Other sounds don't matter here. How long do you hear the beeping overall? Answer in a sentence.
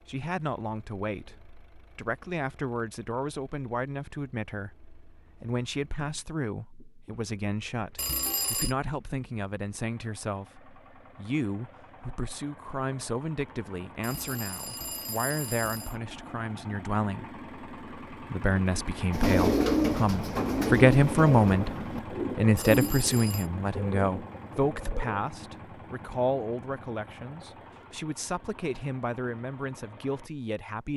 You can hear the beeping for 4 seconds altogether.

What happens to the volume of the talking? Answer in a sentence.
The loudness of the talking goes up, then down.